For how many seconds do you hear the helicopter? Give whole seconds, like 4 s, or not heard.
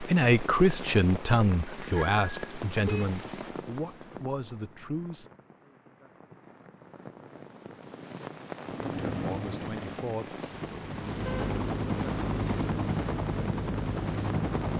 6 s.